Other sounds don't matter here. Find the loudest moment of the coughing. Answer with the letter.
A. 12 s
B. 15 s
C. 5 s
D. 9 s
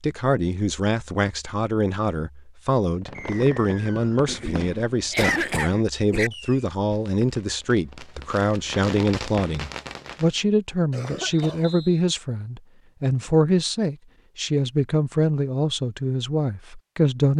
C.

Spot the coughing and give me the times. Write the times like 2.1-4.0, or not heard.
4.2-6.3, 10.9-11.7.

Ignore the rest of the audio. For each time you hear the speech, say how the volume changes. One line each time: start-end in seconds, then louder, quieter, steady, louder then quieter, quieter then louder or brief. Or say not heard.
0.0-17.3 steady.